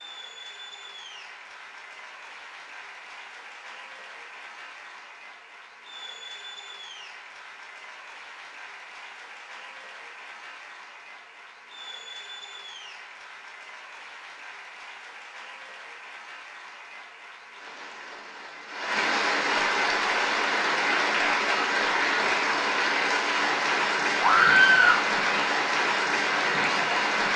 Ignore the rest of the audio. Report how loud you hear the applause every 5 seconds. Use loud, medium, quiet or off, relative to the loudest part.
quiet, quiet, quiet, medium, loud, loud.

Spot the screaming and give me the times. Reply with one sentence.
The screaming can be heard from 24.2 to 25.1 s.